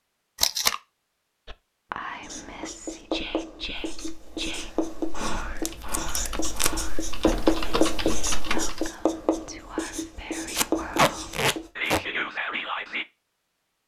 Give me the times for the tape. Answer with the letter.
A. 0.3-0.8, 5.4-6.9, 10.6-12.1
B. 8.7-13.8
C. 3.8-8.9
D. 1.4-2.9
A.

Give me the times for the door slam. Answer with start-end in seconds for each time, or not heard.
7.2-8.7.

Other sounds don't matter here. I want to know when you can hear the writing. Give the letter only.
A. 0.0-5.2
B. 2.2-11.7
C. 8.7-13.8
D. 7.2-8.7
B.